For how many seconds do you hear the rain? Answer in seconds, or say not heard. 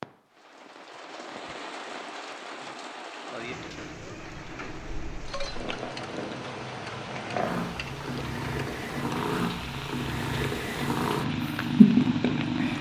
13 s.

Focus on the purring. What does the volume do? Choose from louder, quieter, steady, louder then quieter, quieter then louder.
louder.